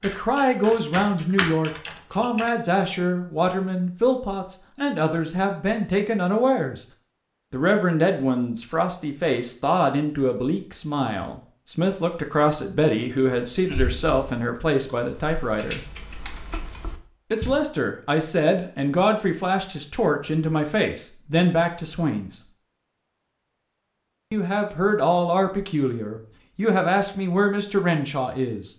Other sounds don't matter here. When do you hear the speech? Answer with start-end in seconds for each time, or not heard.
0.0-6.8, 7.5-15.8, 17.3-22.4, 24.3-28.7.